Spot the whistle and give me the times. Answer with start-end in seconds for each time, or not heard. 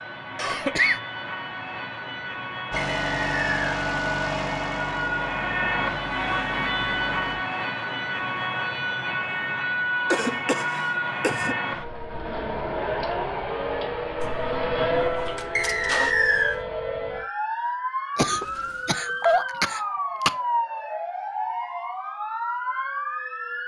2.8-3.6, 15.6-16.6.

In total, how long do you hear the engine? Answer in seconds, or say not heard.
7 s.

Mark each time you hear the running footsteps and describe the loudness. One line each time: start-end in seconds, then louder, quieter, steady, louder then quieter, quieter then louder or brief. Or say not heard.
not heard.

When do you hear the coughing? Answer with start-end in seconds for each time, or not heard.
0.3-1.0, 10.1-11.6, 18.1-20.3.